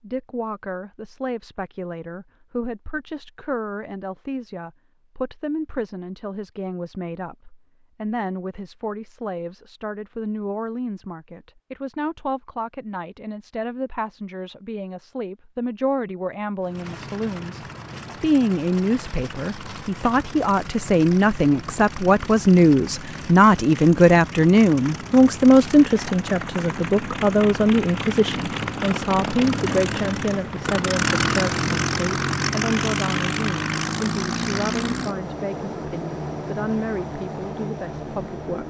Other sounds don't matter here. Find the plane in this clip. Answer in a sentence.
You can hear the plane from 16.6 to 38.6 s.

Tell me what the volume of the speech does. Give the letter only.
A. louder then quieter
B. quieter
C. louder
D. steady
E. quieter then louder
A.